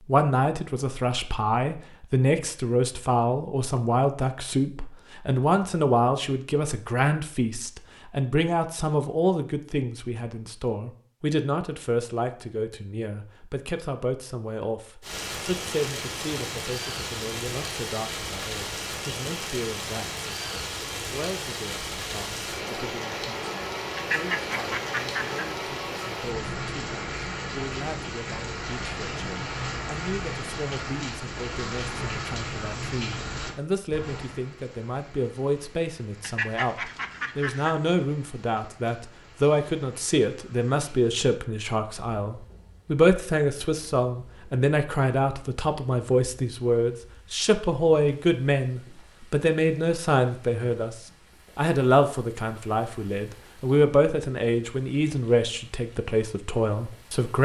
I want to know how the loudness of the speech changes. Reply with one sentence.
The loudness of the speech goes down, then up.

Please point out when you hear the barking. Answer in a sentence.
You can't hear the barking here.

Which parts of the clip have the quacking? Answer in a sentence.
The quacking can be heard from 23.9 to 25.4 s and from 36.2 to 37.8 s.